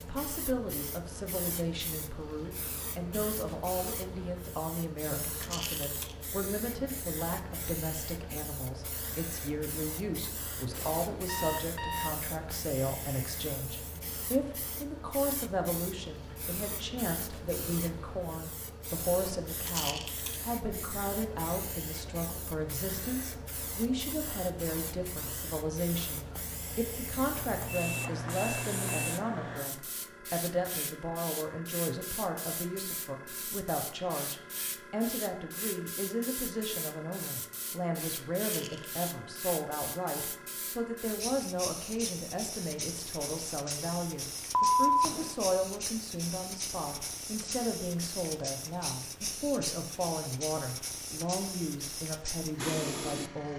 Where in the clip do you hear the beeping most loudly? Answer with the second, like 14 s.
45 s.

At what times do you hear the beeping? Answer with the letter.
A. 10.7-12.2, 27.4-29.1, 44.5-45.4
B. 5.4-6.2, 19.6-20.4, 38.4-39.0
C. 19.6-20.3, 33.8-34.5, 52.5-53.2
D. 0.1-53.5
A.